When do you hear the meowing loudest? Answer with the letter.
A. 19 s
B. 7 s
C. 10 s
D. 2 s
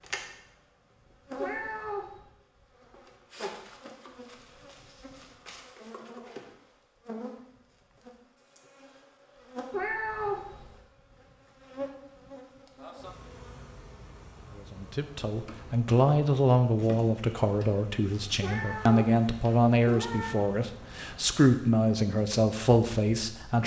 C.